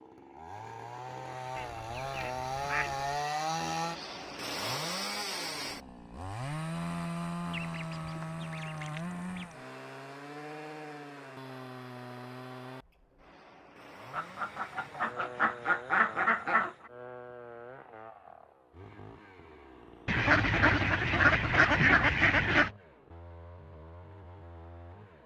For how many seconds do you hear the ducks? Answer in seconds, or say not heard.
9 s.